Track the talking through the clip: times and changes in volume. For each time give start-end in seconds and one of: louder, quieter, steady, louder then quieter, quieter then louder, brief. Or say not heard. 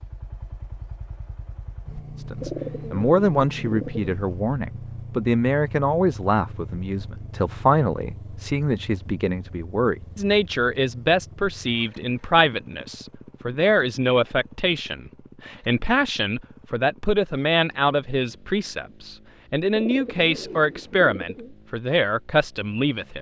2.3-23.1 steady.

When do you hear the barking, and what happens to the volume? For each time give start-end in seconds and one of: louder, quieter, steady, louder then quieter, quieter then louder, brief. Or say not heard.
not heard.